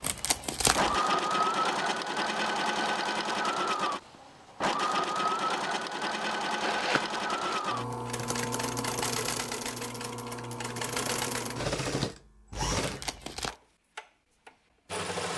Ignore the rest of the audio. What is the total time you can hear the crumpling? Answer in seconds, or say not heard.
3 s.